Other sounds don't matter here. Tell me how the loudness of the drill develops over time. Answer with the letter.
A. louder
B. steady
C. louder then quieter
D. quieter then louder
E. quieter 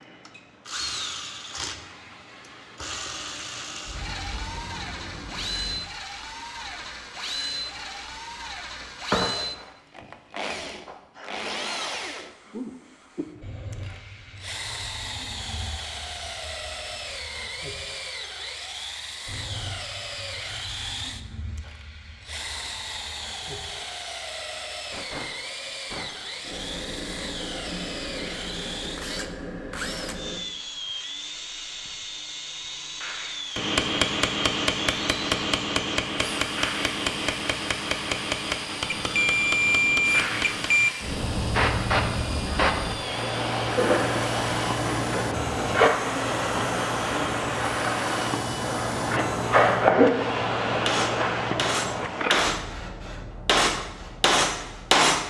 B.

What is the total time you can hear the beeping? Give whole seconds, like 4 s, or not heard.
2 s.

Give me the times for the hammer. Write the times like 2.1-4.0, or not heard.
33.5-40.7, 50.9-55.2.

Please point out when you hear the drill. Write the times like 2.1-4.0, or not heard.
0.2-49.9.